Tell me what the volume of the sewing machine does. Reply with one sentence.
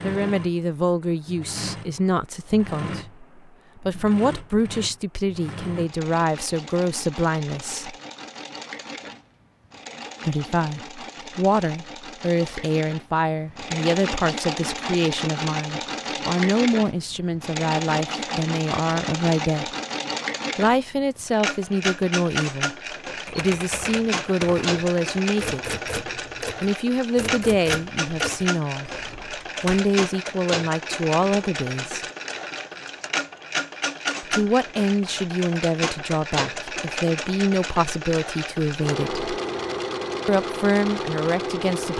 The loudness of the sewing machine goes up.